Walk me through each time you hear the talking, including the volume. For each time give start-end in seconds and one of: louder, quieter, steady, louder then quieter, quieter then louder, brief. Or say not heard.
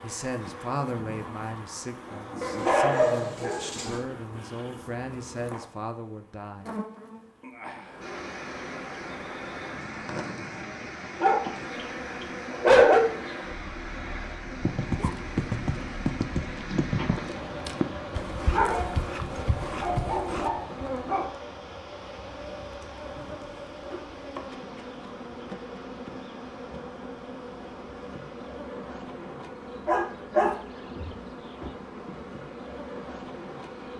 0.0-6.7 quieter then louder.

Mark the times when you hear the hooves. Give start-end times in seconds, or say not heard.
14.7-20.5.